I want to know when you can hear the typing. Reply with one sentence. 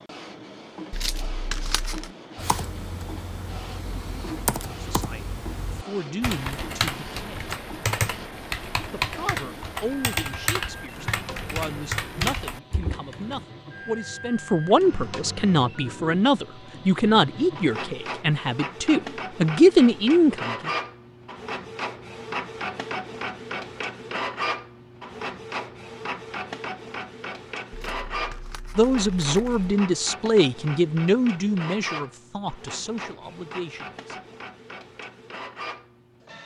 You can hear the typing from 2.4 to 13.4 s.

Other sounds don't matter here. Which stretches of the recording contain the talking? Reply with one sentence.
You can hear the talking from 4.7 to 7.5 s, from 8.9 to 20.7 s and from 28.8 to 34.1 s.